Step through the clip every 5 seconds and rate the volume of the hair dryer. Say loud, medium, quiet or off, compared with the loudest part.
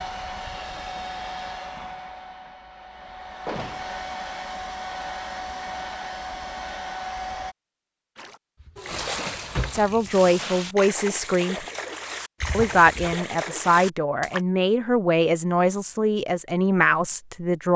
loud, loud, off, off.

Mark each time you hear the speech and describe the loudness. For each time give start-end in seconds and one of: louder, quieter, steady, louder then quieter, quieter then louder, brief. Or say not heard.
9.7-11.7 brief
12.5-17.7 steady.